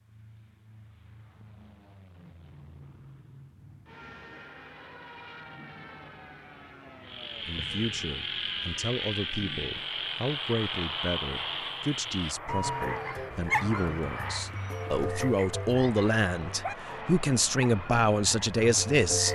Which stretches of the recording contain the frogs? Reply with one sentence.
You can hear the frogs from 7.0 to 19.2 s.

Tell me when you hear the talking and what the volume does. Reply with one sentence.
The talking can be heard from 7.5 to 19.2 s, getting louder.